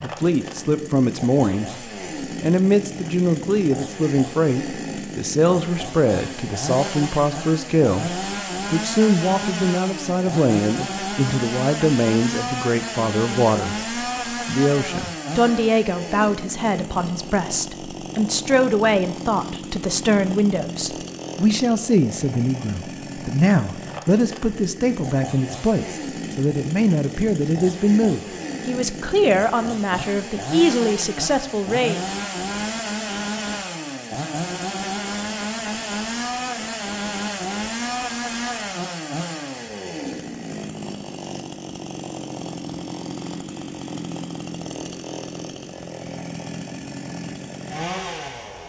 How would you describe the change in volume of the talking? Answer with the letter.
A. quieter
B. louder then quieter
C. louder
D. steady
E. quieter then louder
D.